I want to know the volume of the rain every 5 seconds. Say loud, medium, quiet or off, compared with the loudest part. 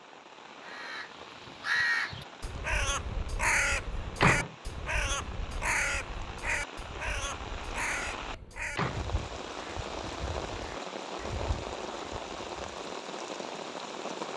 medium, loud, loud.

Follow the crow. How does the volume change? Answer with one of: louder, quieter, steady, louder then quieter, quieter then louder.
quieter.